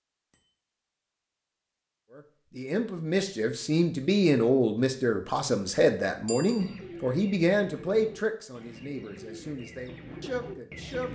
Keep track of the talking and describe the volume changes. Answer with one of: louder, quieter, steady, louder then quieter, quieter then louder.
quieter.